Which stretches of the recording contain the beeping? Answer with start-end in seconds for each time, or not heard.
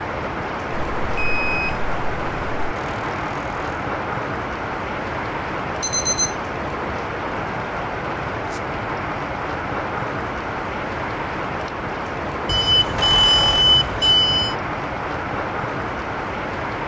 0.9-2.7, 5.8-6.3, 12.4-14.6.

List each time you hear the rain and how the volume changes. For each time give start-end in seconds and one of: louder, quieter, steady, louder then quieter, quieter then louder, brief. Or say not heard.
0.0-16.8 steady.